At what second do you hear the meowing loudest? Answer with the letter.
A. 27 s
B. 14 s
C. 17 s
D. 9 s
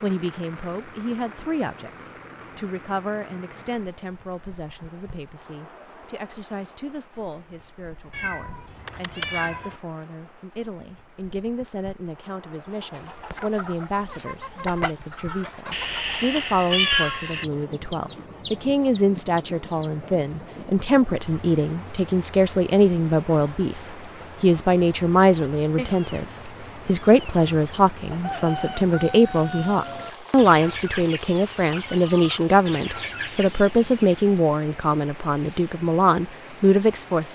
C.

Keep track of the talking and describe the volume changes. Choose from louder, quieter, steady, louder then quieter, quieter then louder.
louder.